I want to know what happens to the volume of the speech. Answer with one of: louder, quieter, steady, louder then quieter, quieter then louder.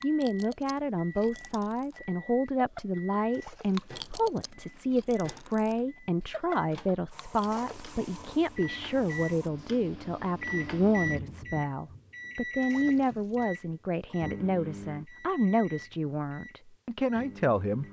steady.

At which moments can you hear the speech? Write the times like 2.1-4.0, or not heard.
0.0-17.8.